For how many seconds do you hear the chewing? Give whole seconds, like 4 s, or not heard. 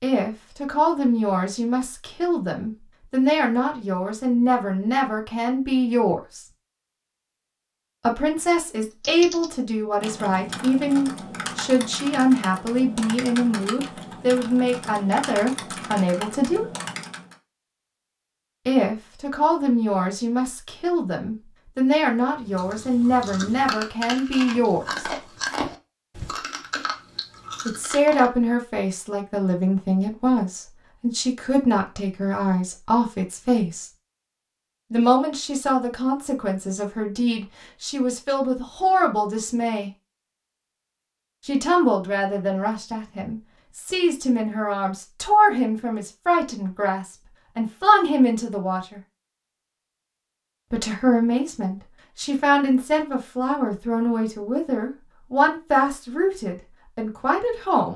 6 s.